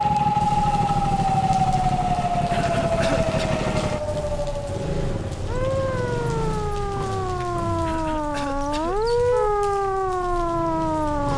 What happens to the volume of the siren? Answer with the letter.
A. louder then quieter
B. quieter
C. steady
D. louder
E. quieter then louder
E.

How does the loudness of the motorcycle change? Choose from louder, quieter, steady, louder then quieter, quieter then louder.
quieter.